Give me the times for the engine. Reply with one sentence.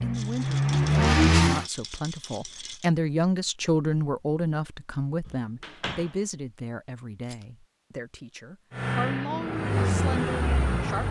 You can hear the engine from 0.0 to 1.6 s and from 8.7 to 11.0 s.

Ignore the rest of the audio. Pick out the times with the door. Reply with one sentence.
You can hear the door from 5.2 to 6.2 s.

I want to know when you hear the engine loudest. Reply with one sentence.
The loudest moment of the engine is at 1 second.